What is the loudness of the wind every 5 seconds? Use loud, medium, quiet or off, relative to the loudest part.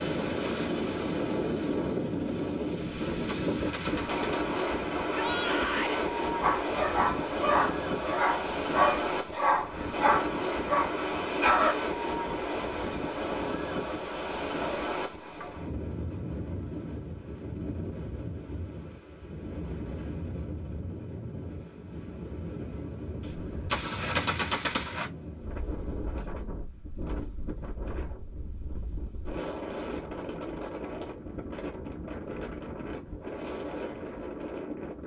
loud, loud, loud, medium, medium, medium, medium.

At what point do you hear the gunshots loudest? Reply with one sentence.
The loudest moment of the gunshots is at 24 seconds.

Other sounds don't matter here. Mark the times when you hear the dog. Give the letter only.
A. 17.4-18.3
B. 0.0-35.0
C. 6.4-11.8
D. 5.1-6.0
C.